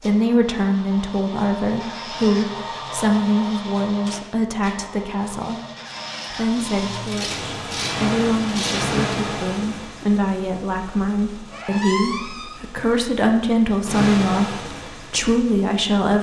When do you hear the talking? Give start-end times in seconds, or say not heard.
0.0-5.6, 6.3-16.1.